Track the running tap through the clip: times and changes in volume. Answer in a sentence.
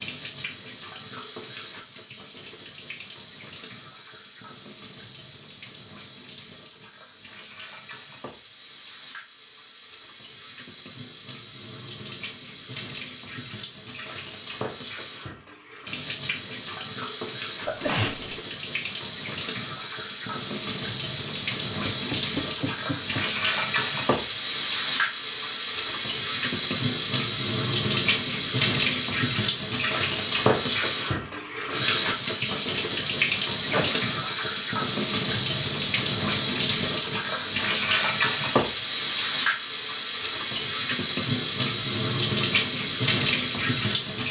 You can hear the running tap from 0.0 to 44.2 s, getting louder.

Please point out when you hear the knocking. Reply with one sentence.
You can hear the knocking from 21.9 to 23.3 s.